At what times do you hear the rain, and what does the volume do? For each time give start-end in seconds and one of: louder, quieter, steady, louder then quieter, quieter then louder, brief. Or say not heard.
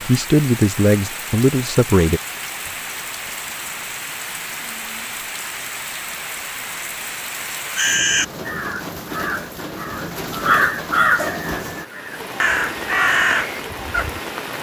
0.0-14.5 steady.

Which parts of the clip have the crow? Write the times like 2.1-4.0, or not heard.
7.8-14.2.